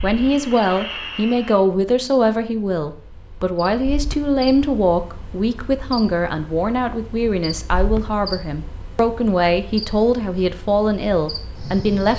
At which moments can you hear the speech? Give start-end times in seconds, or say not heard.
0.0-12.1.